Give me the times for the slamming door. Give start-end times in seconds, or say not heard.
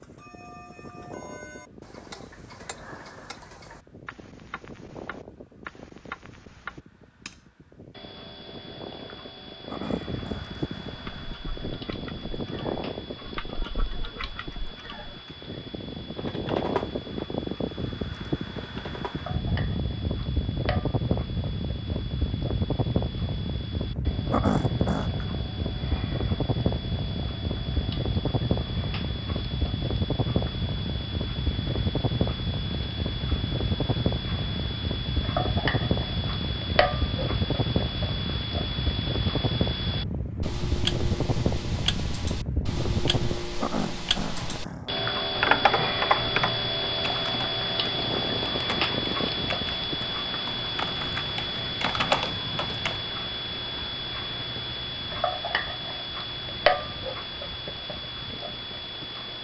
not heard.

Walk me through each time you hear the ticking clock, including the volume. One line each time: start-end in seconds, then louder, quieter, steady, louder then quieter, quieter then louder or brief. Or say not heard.
0.0-59.3 louder.